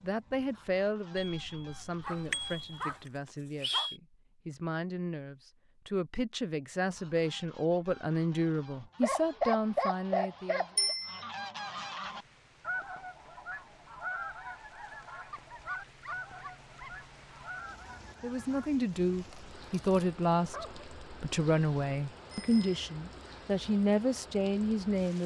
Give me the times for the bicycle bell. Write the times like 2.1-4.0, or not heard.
1.1-2.9, 10.8-11.2, 22.3-22.8.